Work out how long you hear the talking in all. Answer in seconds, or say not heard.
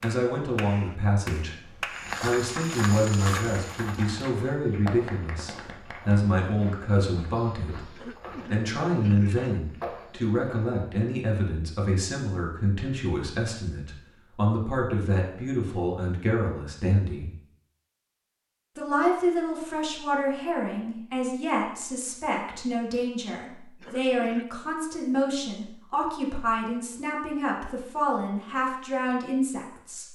28 s.